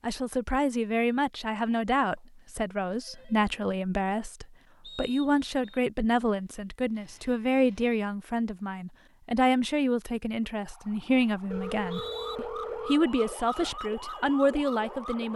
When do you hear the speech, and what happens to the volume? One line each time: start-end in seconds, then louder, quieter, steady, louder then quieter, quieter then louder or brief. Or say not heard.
0.0-15.3 steady.